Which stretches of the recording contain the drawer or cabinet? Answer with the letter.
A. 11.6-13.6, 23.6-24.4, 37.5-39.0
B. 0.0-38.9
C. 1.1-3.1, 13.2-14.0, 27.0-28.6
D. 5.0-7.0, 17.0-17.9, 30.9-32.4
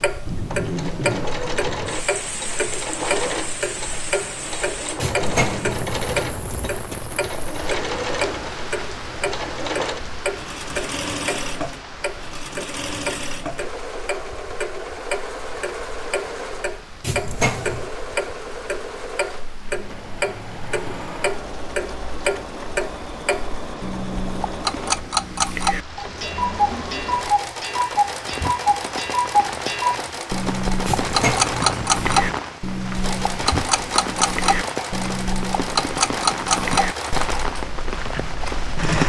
D.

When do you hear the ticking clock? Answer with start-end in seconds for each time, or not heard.
0.0-38.9.